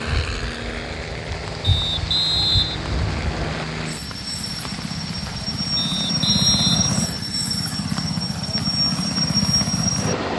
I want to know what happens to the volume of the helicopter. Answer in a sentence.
The volume of the helicopter goes up.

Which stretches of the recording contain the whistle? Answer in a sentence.
The whistle can be heard from 1.6 to 3.6 s and from 5.8 to 7.2 s.